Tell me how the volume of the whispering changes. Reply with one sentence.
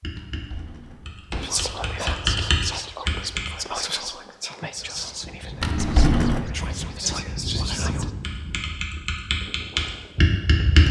The loudness of the whispering goes down, then up.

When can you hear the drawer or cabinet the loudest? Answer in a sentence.
The loudest moment of the drawer or cabinet is at 6 seconds.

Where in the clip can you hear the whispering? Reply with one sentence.
You can hear the whispering from 1.4 to 8.1 s.